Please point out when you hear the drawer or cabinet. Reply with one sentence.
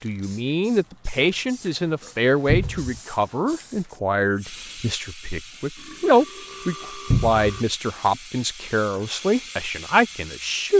The drawer or cabinet can be heard from 2.5 to 3.0 s and from 7.1 to 7.5 s.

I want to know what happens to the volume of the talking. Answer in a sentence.
The volume of the talking stays about the same.